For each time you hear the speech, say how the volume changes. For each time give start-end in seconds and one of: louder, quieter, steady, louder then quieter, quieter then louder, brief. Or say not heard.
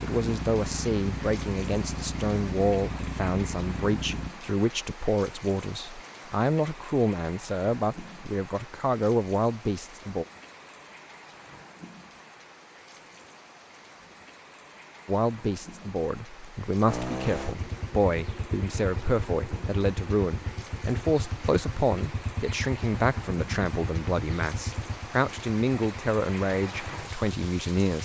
0.0-10.2 steady
15.1-28.0 steady.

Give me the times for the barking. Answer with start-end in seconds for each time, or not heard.
not heard.